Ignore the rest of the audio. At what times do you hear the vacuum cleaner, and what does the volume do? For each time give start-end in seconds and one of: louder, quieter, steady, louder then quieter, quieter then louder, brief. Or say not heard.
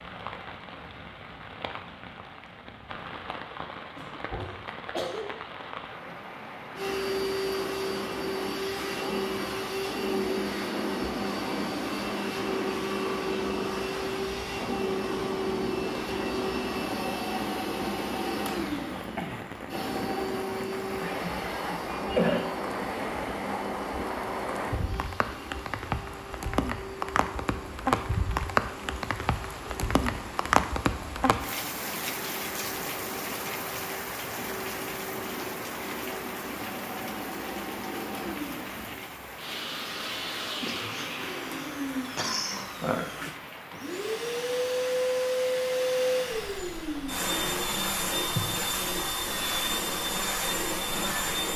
6.8-51.5 quieter then louder.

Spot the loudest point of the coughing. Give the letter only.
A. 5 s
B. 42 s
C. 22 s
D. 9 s
C.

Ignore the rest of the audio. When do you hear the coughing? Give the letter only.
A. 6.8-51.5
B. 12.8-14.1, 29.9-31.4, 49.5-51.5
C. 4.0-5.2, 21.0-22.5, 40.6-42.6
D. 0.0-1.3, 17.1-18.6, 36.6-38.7
C.